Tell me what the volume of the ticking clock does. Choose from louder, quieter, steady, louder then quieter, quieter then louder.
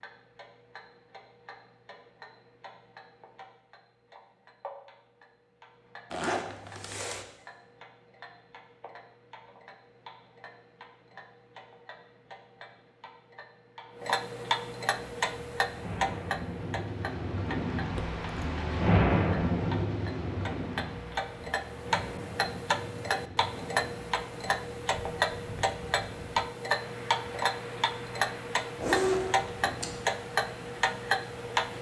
louder.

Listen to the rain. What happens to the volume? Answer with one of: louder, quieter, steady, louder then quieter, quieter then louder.
quieter.